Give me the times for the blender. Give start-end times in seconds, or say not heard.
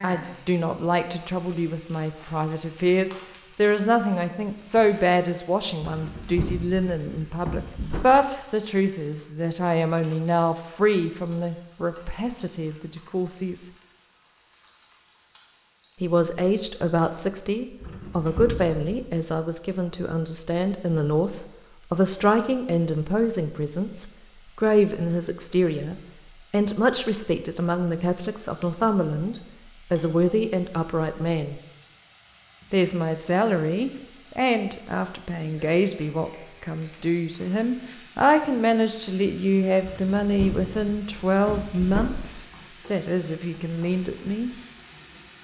not heard.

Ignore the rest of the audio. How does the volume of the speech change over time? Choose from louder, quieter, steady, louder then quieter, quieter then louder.
steady.